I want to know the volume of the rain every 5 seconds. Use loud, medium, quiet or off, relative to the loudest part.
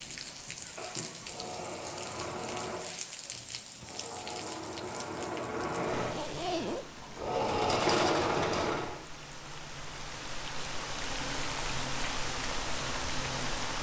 medium, medium, loud.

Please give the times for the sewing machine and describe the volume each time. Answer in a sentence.
The sewing machine can be heard from 0.0 to 8.9 s, getting louder.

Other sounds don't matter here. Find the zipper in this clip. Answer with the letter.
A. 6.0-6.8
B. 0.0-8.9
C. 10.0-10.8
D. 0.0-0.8
A.